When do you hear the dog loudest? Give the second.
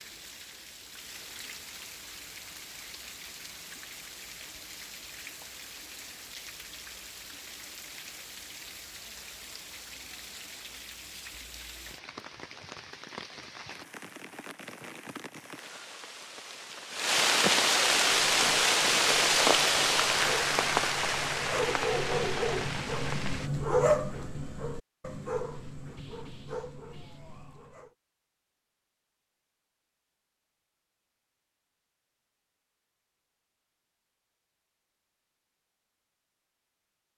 24 s.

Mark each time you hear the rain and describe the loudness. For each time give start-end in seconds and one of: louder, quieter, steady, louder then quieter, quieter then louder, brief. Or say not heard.
0.0-23.5 louder.